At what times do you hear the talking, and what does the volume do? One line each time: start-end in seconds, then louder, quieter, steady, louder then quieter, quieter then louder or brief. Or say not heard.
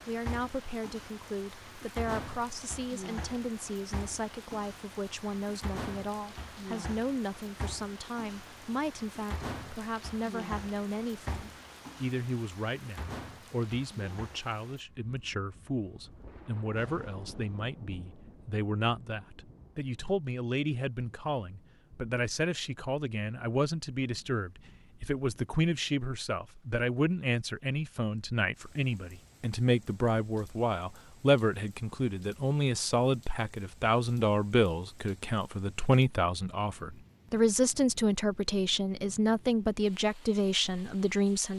0.1-41.5 louder.